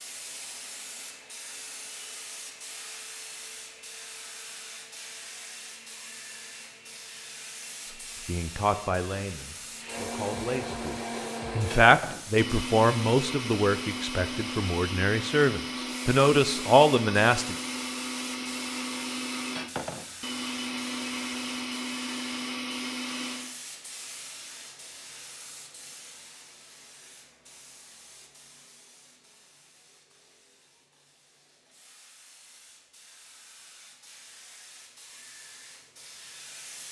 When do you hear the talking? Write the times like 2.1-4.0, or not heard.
8.2-17.6.